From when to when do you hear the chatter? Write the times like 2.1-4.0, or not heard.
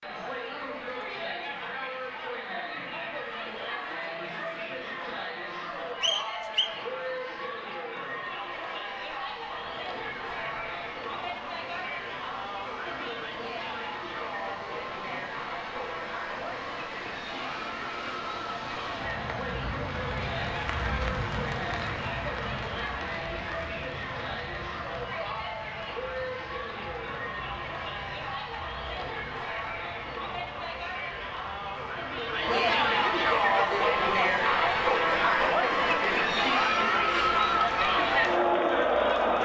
0.0-39.4.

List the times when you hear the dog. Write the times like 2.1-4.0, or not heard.
not heard.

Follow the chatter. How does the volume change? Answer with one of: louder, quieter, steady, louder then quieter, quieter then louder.
louder.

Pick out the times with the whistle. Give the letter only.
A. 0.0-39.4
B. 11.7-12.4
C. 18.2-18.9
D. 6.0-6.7
D.